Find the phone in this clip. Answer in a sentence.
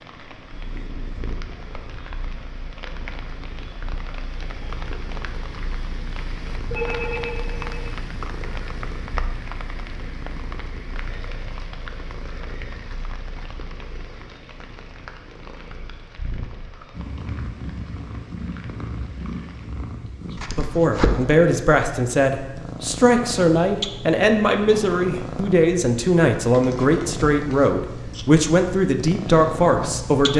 The phone can be heard from 6.7 to 7.9 s.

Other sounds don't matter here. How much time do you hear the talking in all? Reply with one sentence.
The talking can be heard for 10 seconds in total.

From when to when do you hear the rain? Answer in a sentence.
The rain can be heard from 0.0 to 20.0 s.